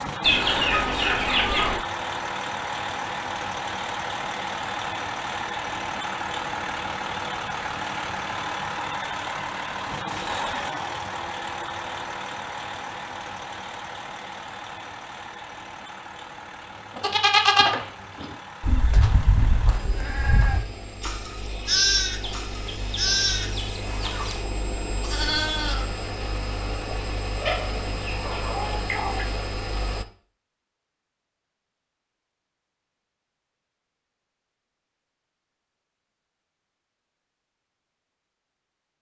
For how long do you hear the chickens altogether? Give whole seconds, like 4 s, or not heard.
6 s.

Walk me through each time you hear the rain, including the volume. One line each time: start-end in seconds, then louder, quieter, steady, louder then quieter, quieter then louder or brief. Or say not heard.
not heard.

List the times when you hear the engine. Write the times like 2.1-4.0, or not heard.
0.0-30.1.